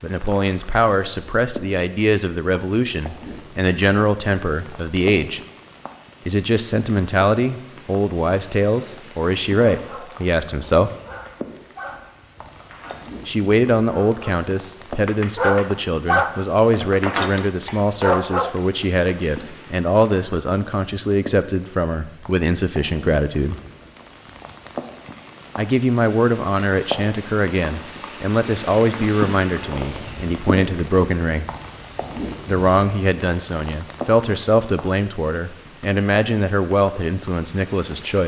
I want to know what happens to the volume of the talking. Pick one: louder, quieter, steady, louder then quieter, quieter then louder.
steady.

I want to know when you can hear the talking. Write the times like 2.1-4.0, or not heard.
0.0-5.4, 6.2-10.9, 13.2-23.6, 25.6-31.4, 32.5-38.2.